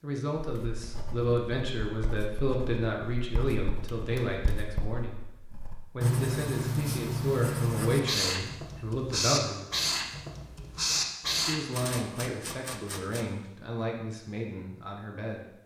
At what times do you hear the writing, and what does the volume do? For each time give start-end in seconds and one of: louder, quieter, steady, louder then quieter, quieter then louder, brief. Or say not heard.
0.4-11.6 louder.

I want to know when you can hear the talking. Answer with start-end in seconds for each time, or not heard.
0.0-9.7, 11.3-15.5.